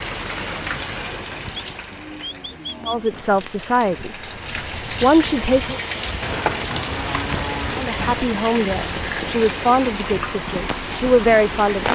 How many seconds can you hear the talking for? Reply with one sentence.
You can hear the talking for 6 seconds altogether.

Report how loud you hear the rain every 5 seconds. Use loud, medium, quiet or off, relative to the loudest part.
medium, loud, loud.